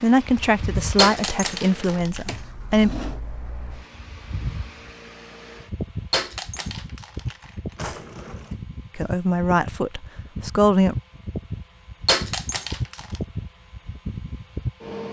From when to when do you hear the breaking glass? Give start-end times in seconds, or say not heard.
0.9-2.4, 6.1-7.5, 12.1-13.2.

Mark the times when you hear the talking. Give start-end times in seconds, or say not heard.
0.0-2.9, 8.9-10.9.